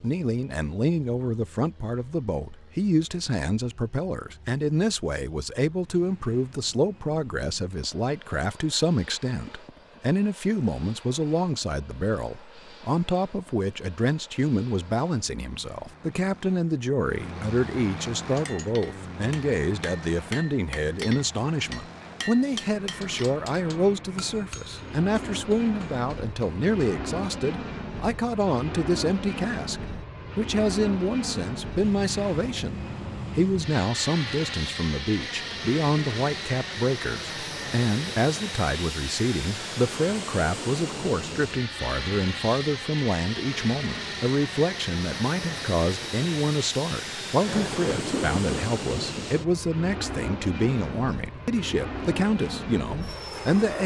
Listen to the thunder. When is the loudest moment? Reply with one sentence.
The volume of the thunder peaks at 48 seconds.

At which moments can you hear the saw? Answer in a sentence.
You can't hear the saw here.